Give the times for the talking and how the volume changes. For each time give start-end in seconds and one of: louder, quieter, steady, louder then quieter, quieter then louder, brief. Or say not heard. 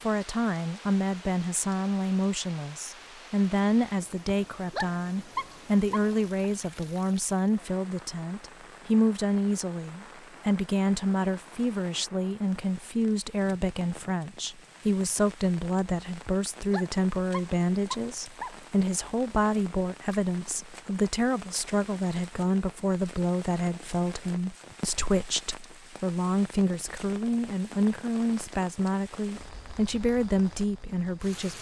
0.0-31.5 steady.